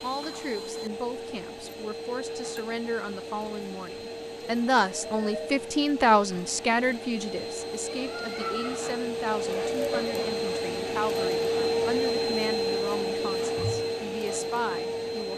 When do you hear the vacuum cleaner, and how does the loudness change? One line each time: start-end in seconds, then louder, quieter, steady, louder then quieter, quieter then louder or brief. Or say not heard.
0.0-15.3 louder.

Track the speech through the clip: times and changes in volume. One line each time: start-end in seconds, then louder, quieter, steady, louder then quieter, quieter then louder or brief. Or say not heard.
0.0-15.3 louder then quieter.